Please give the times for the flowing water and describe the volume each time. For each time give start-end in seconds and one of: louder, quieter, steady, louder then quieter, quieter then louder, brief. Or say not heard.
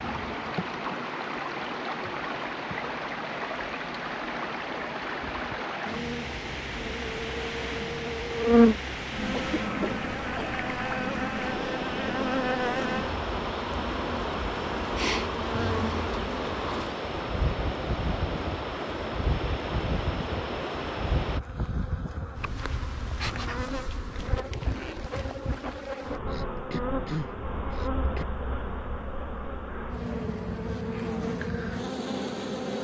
0.0-21.4 steady.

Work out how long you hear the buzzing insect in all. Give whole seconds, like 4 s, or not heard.
33 s.